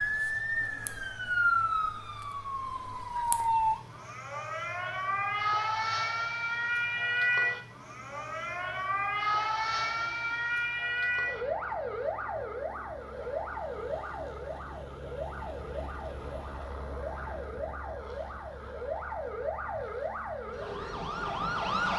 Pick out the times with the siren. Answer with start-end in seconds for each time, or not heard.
0.0-21.9.